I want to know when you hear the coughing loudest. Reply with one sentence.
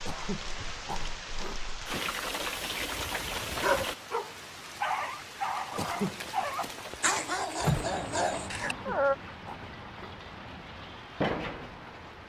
The loudest moment of the coughing is at 6 seconds.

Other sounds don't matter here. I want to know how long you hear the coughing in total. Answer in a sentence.
You can hear the coughing for 4 seconds altogether.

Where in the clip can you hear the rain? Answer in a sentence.
The rain can be heard from 0.0 to 12.2 s.